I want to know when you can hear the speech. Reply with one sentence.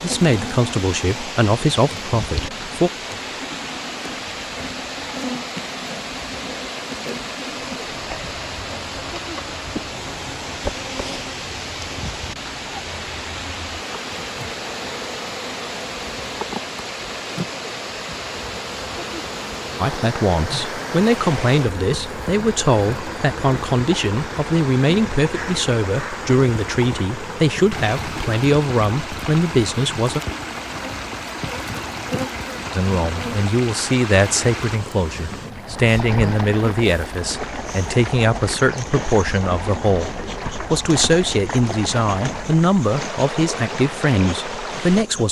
The speech can be heard from 0.0 to 2.9 s, from 19.8 to 30.2 s and from 32.7 to 45.2 s.